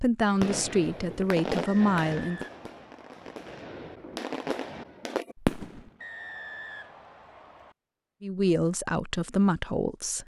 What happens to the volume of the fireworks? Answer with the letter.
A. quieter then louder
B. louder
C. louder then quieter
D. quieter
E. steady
A.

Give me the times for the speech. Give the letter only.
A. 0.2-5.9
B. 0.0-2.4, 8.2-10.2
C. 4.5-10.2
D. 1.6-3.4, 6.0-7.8
B.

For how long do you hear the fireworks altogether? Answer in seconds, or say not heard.
6 s.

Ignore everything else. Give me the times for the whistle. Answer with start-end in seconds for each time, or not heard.
1.6-3.4, 6.0-7.8.